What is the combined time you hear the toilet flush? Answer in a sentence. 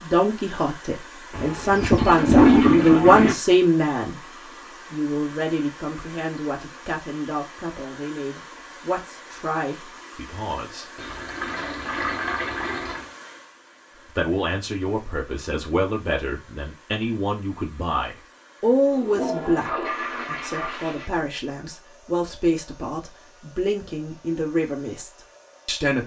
The toilet flush can be heard for 7 seconds in total.